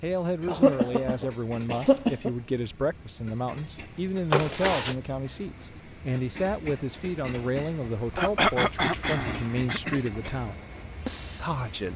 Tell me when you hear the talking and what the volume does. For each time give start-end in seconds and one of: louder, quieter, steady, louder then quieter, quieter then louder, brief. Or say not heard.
0.0-11.9 steady.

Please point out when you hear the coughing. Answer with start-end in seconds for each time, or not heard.
0.5-2.3, 4.3-5.0, 8.2-10.1.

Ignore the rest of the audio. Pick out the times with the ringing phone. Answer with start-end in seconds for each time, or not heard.
not heard.